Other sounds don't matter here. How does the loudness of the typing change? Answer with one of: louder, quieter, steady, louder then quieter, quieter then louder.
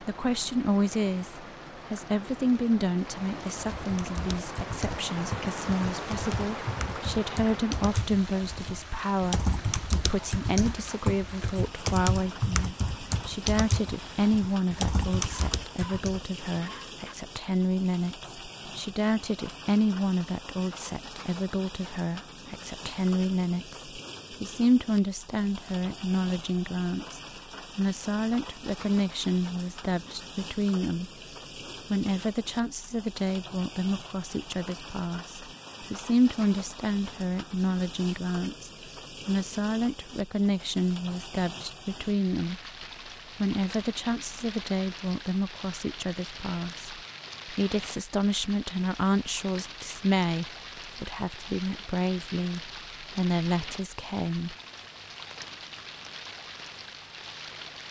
louder.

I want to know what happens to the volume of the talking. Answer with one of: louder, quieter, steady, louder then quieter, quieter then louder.
steady.